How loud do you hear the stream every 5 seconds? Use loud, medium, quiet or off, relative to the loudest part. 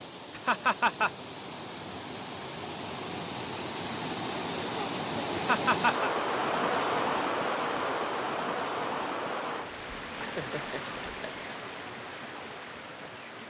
medium, loud, medium.